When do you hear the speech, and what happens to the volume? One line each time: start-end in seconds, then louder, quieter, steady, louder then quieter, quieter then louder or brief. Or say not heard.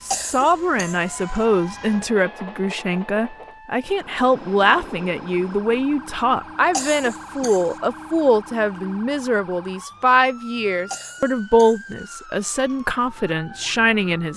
0.1-14.3 steady.